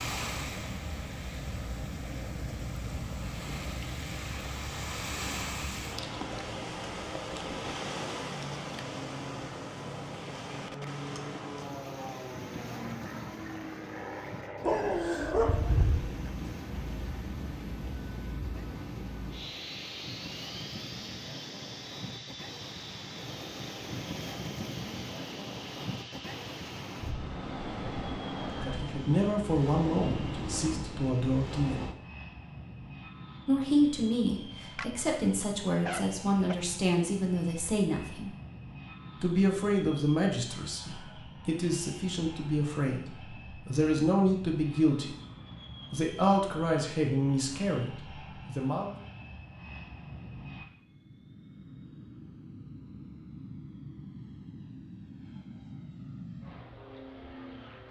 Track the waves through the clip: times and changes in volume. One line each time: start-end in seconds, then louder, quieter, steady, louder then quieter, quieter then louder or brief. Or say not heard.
0.0-31.9 quieter then louder.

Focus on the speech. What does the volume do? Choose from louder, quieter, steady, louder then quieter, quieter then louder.
steady.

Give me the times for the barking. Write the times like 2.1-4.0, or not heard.
14.6-16.1, 34.8-36.5.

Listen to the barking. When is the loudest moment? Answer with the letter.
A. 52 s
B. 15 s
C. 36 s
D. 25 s
B.